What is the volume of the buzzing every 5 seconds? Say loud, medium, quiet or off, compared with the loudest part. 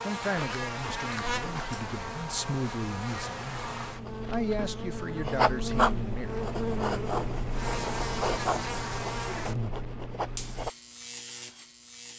loud, loud, medium.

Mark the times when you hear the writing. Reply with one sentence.
The writing can be heard from 0.3 to 10.7 s.